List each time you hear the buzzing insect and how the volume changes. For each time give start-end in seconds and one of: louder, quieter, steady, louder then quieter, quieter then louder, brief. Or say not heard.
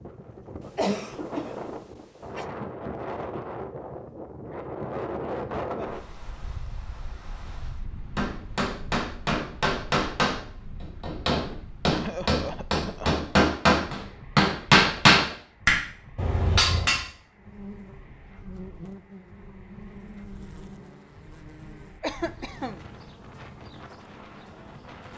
17.4-25.1 quieter.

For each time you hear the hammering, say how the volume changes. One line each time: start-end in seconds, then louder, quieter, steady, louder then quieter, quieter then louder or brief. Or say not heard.
8.2-17.0 louder.